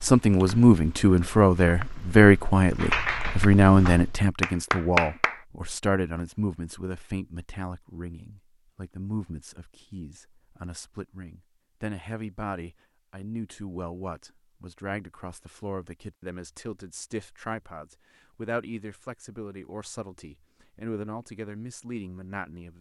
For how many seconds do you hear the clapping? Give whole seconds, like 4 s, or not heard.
3 s.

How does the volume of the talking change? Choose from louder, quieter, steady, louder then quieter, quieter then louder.
quieter.